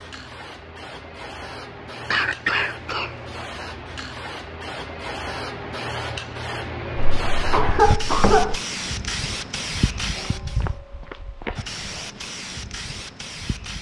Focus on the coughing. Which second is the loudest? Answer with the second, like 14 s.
8 s.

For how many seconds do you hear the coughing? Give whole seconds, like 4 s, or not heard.
3 s.